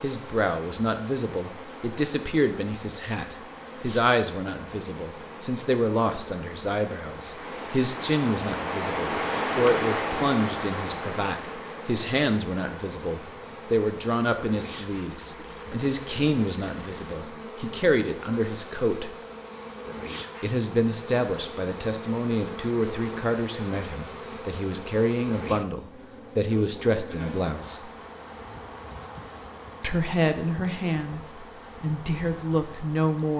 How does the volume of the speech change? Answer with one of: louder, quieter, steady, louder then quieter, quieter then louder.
steady.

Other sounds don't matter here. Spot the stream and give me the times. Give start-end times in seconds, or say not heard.
0.0-17.2.